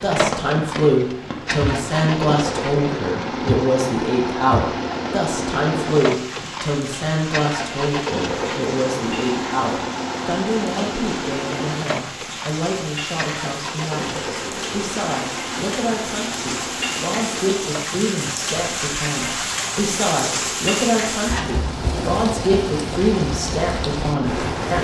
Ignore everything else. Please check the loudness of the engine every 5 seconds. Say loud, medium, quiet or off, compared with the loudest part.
loud, loud, loud, medium, medium.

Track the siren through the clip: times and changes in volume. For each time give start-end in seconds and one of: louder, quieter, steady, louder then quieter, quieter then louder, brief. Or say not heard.
not heard.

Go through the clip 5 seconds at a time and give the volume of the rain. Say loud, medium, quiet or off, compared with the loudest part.
medium, medium, medium, loud, loud.